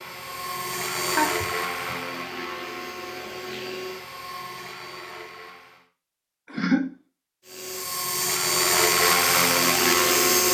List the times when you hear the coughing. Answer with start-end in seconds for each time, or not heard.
1.1-1.9, 6.5-7.0.